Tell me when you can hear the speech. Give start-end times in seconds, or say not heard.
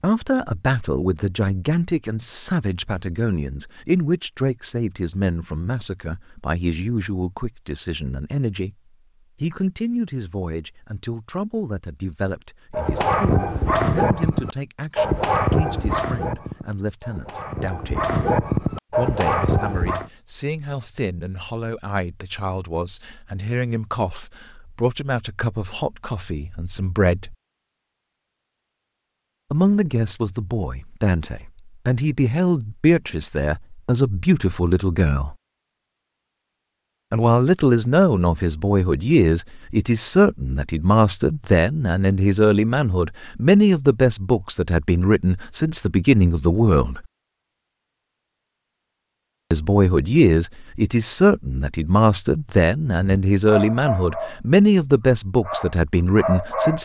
0.0-8.8, 9.4-18.1, 18.9-27.4, 29.5-35.4, 37.1-47.0, 49.5-56.8.